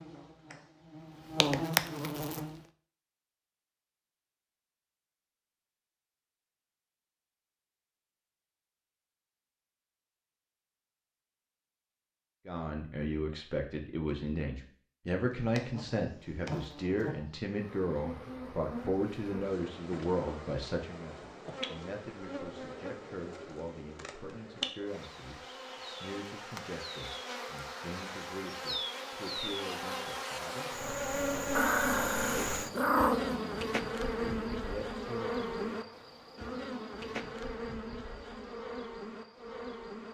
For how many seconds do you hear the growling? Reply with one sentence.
The growling can be heard for 2 seconds in total.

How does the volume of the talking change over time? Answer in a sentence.
The loudness of the talking goes down.